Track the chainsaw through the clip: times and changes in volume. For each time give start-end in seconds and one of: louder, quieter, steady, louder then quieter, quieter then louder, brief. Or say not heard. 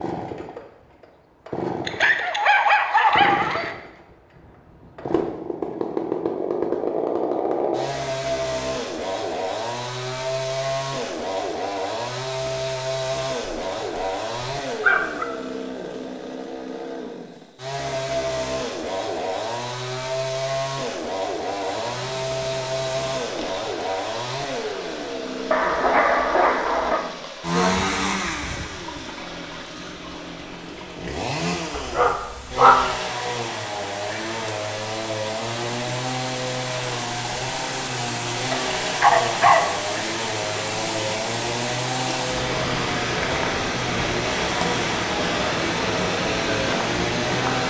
0.0-47.6 steady.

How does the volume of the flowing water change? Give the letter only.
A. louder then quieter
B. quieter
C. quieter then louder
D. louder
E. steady
D.